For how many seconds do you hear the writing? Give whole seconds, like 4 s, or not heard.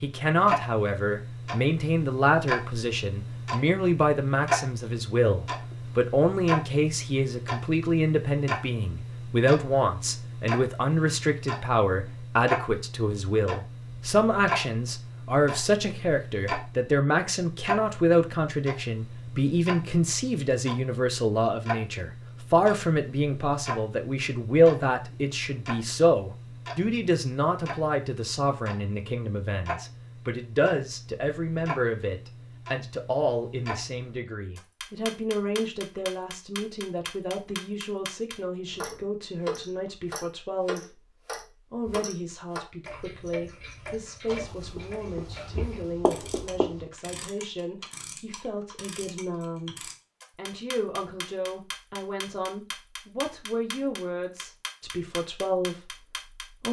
3 s.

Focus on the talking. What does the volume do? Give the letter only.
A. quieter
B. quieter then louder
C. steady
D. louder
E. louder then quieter
A.